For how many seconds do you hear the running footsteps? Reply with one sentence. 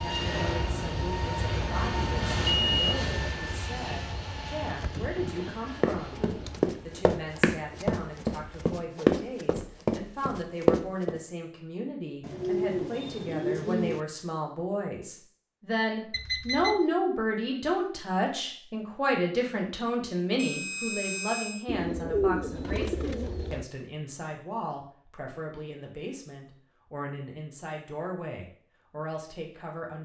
You can hear the running footsteps for 6 seconds altogether.